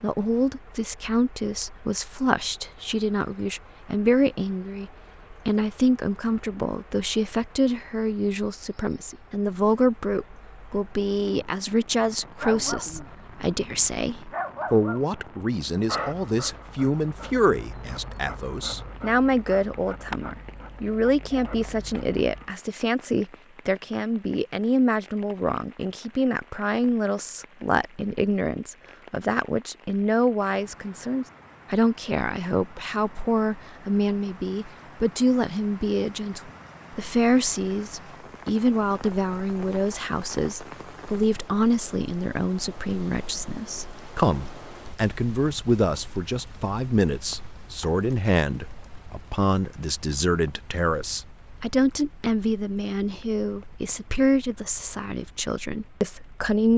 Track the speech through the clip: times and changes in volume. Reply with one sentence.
You can hear the speech from 0.0 to 56.7 s, at a steady volume.